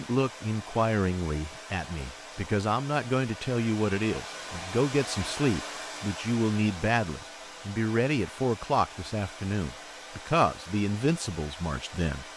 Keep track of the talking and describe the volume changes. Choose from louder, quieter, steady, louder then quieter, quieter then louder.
steady.